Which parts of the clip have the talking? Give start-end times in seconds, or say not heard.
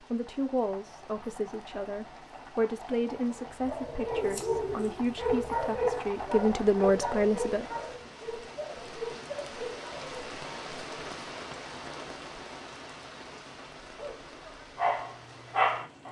0.1-7.7.